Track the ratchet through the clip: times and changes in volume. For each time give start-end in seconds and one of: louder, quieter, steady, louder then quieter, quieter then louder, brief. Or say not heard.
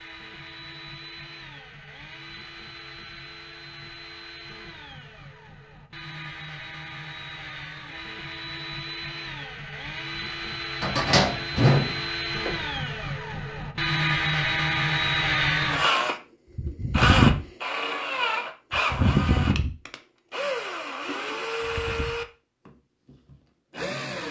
not heard.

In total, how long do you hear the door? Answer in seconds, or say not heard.
2 s.